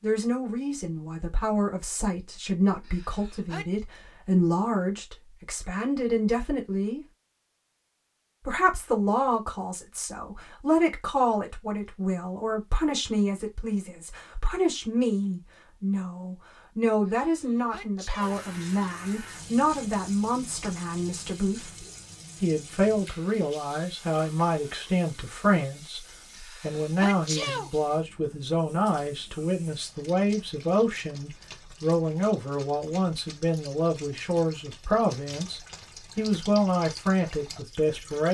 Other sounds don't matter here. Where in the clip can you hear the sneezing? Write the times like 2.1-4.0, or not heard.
2.9-3.6, 17.1-18.4, 26.4-27.7.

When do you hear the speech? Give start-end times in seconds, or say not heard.
0.0-7.0, 8.4-38.3.